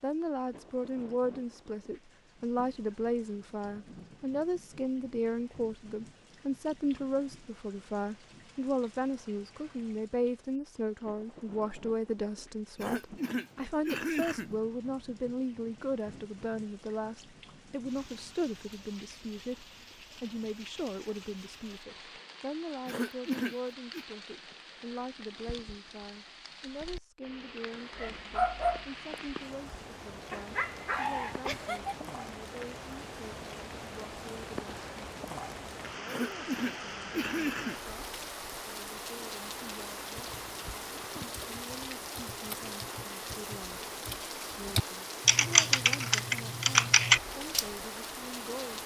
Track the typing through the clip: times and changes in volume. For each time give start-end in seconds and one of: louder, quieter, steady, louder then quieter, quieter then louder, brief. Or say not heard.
40.1-47.6 louder.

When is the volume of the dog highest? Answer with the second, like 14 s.
29 s.